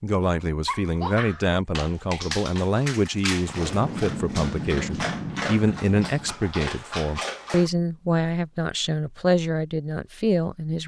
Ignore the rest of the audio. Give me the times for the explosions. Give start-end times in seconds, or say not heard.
3.5-6.4.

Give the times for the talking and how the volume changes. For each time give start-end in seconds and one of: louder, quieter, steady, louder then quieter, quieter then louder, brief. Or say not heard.
0.0-10.8 steady.